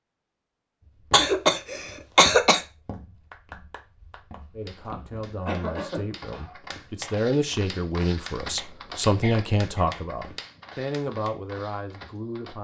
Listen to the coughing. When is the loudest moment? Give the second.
2 s.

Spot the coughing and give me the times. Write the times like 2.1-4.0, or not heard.
1.1-2.6, 5.1-6.5, 9.2-10.0.